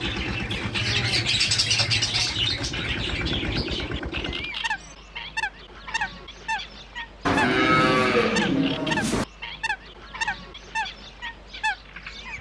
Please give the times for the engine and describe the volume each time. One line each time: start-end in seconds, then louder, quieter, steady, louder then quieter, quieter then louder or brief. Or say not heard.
0.0-4.5 quieter then louder.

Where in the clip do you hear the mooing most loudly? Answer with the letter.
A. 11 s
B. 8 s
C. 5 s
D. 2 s
B.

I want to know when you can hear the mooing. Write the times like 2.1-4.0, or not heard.
0.8-2.3, 7.2-9.2.